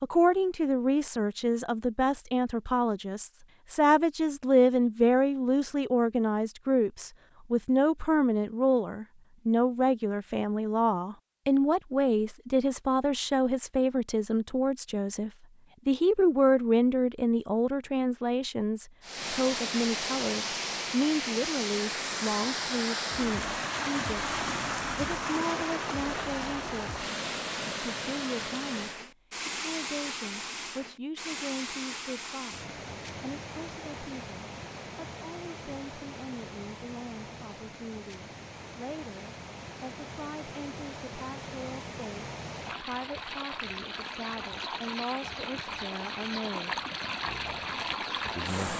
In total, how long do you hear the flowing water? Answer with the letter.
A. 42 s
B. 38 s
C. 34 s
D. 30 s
D.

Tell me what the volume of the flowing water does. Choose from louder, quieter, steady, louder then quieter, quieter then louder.
quieter then louder.